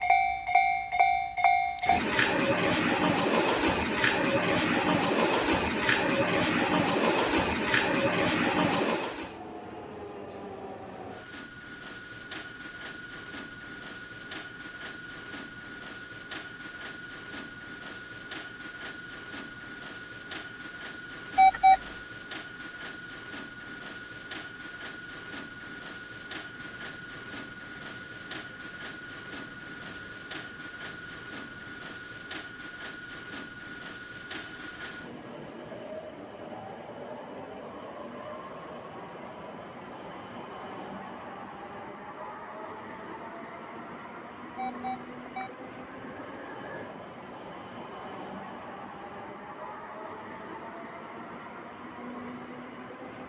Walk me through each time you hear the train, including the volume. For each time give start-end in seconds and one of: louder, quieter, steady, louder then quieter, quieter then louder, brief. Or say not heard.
0.0-53.2 quieter.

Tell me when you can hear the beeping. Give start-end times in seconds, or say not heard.
21.4-21.8, 44.5-45.5.